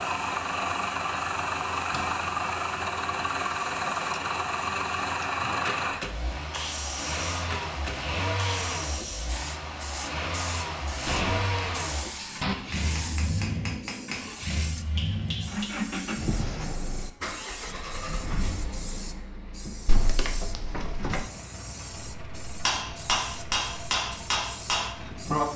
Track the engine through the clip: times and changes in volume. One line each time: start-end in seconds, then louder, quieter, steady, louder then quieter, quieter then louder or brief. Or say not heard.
0.0-25.5 quieter.